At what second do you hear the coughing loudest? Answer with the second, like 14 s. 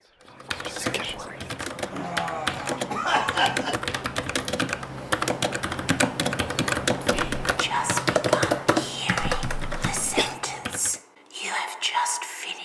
3 s.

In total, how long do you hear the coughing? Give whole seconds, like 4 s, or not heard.
3 s.